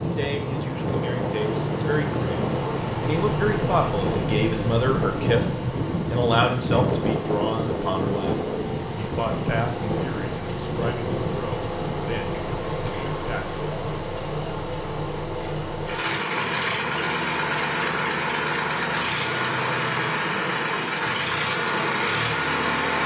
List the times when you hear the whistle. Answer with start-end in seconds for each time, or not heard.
not heard.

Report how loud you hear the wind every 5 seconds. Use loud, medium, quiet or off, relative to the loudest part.
loud, loud, medium, off, off.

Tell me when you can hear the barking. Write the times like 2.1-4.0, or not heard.
not heard.